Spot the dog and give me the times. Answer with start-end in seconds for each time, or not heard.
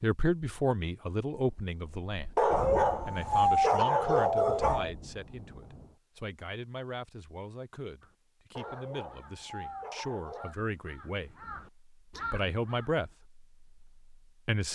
2.4-5.0, 8.6-10.6.